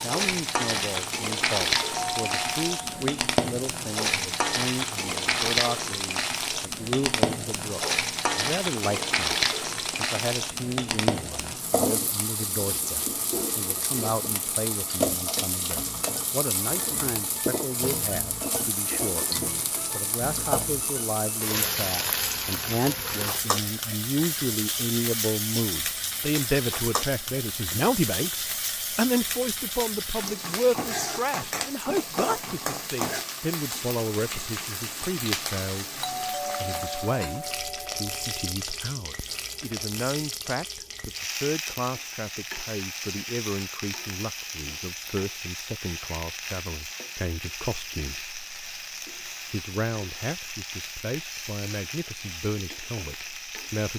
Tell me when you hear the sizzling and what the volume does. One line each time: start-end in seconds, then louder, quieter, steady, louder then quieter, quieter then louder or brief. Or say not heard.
0.0-53.9 quieter.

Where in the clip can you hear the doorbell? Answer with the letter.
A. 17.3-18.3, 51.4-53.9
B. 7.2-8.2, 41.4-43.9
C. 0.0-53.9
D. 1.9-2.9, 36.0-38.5
D.